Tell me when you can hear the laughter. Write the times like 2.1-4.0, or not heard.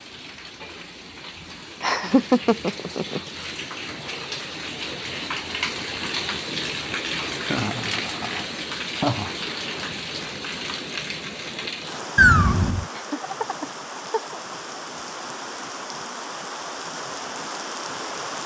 1.8-3.2, 7.3-9.3, 12.9-14.4.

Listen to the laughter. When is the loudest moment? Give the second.
2 s.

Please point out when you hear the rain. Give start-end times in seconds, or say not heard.
0.0-18.4.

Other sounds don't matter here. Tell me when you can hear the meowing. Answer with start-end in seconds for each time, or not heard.
12.2-12.8.